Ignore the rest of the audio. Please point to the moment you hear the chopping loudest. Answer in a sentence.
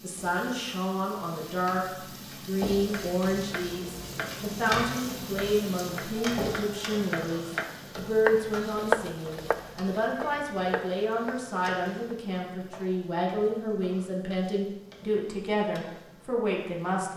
The loudest moment of the chopping is at 9 seconds.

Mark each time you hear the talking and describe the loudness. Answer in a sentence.
The talking can be heard briefly from 0.0 to 1.8 s; and from 2.5 to 17.1 s, at a steady volume.